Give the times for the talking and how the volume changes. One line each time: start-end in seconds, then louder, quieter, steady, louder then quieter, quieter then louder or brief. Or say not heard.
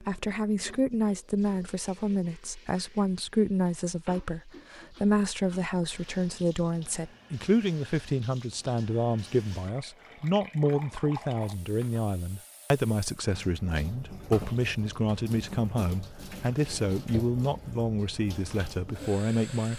0.0-19.7 steady.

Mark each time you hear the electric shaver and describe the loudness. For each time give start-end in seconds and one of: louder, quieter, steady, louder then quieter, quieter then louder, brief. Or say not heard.
not heard.